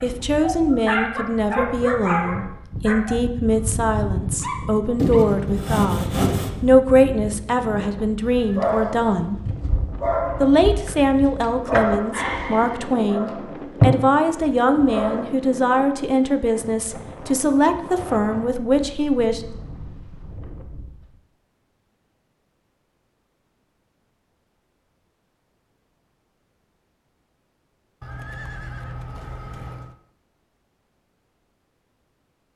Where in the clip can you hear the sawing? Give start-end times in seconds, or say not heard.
5.0-6.5.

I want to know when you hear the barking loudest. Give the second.
14 s.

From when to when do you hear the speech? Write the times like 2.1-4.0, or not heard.
0.0-9.4, 10.4-19.4.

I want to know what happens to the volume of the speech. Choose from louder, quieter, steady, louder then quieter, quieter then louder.
steady.